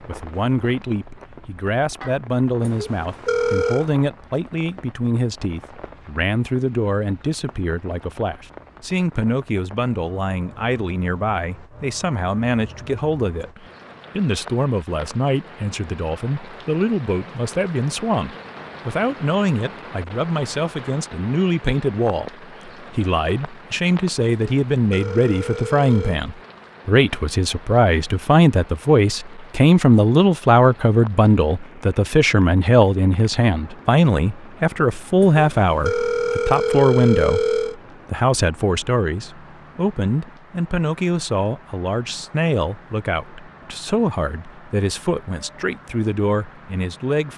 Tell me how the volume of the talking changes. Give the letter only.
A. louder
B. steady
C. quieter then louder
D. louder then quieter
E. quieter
D.